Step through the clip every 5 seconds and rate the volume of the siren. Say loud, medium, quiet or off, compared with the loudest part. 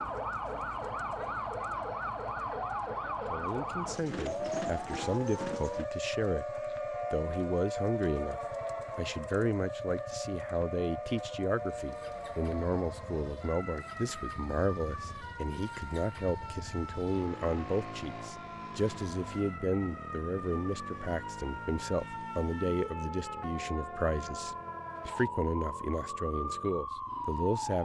loud, loud, medium, medium, medium, loud.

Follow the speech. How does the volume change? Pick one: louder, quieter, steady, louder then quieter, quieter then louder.
steady.